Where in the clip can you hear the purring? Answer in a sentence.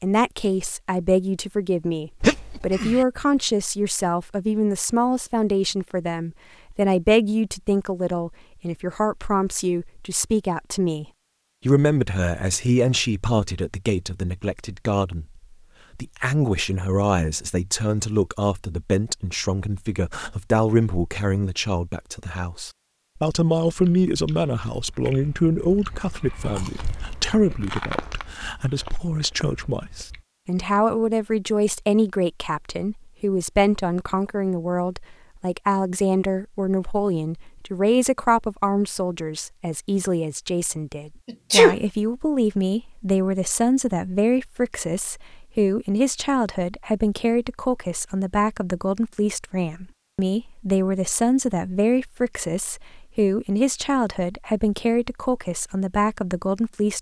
You can't hear the purring here.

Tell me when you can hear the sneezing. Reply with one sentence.
You can hear the sneezing from 2.2 to 3.0 s and from 41.2 to 41.8 s.